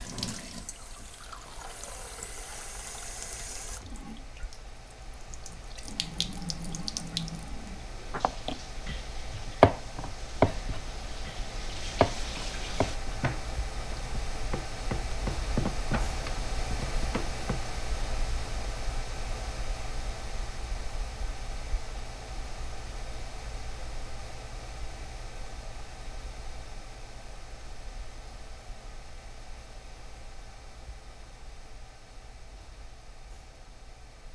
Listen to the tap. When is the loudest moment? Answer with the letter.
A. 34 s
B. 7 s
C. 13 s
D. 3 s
B.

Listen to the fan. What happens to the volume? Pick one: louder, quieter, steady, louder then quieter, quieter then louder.
louder then quieter.